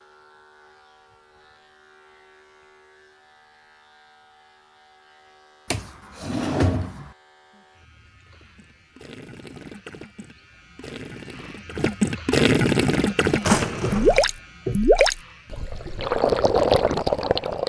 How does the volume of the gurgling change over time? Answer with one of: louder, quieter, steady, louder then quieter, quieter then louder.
louder.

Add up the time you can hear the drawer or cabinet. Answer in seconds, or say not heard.
2 s.